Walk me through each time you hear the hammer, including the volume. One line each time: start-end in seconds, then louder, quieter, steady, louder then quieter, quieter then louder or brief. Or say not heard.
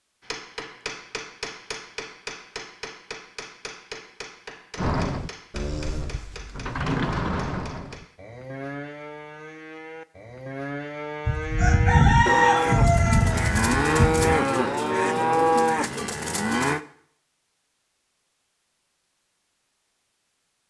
0.2-8.2 quieter.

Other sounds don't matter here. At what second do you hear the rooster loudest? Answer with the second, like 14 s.
12 s.